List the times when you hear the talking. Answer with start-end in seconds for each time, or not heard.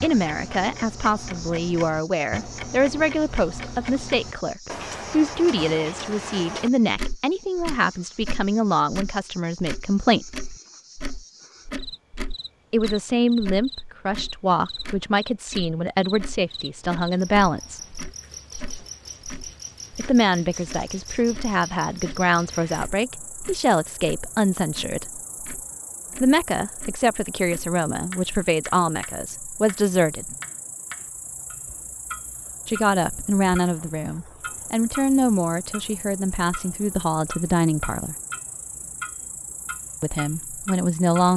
0.0-10.3, 12.7-17.8, 19.9-25.2, 26.2-30.4, 32.6-38.1, 40.0-41.3.